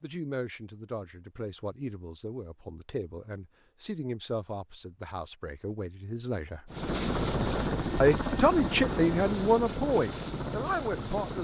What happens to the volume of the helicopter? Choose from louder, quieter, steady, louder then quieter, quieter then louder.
quieter.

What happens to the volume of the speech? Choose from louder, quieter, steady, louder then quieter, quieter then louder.
louder.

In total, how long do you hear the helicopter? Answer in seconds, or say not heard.
5 s.